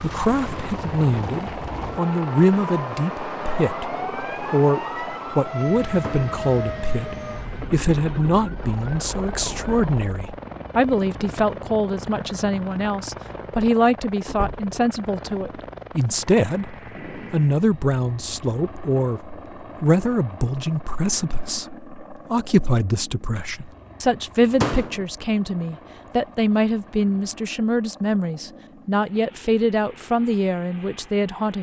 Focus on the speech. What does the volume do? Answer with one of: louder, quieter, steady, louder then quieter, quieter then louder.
steady.